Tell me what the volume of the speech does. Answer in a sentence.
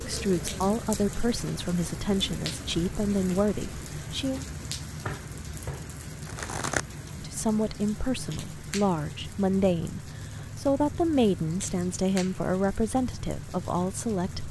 The loudness of the speech stays about the same.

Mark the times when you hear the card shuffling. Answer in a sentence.
The card shuffling can be heard from 5.0 to 6.8 s.